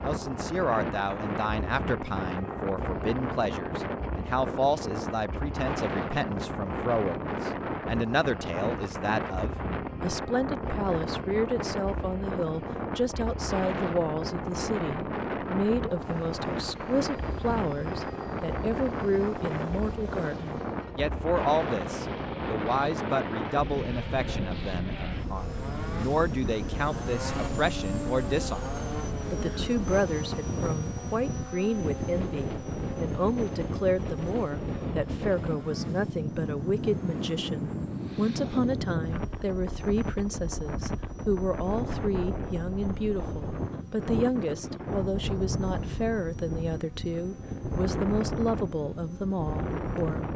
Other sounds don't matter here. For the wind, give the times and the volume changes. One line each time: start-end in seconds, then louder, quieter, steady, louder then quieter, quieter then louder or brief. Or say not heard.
0.0-50.3 steady.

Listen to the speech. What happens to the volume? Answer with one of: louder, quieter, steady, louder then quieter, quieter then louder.
steady.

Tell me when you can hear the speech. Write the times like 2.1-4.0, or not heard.
0.0-50.3.